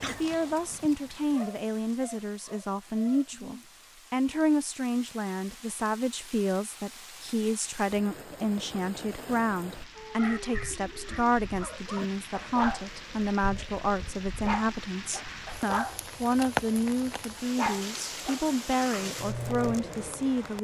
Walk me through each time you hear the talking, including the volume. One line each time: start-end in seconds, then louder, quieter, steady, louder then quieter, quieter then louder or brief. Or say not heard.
0.0-20.6 steady.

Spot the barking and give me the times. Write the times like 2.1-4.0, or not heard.
0.0-3.4, 9.9-20.4.